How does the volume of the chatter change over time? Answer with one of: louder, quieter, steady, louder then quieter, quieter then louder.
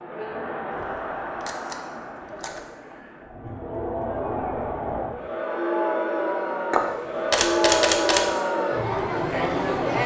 louder.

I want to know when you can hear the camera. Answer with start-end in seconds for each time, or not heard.
0.7-2.6, 6.7-8.3.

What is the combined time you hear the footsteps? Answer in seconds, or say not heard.
not heard.